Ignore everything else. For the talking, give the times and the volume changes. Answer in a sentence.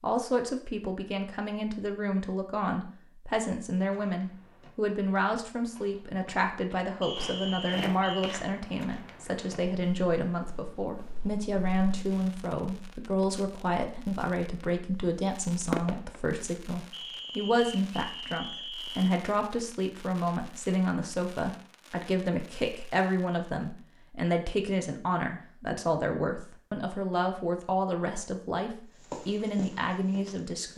The talking can be heard from 0.0 to 30.7 s, at a steady volume.